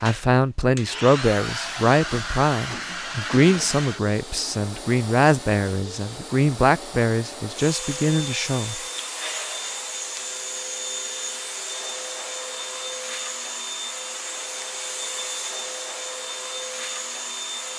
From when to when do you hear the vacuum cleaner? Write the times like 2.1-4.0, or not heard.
0.0-17.7.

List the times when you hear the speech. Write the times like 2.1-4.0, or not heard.
0.0-8.8.